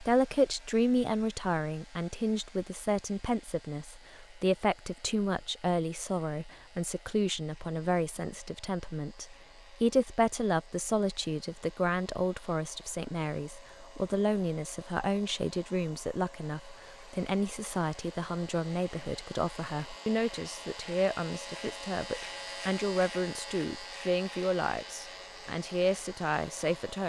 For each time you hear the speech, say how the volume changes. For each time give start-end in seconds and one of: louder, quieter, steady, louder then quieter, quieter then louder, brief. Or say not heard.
0.0-27.0 steady.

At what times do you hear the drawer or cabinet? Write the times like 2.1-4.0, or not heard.
not heard.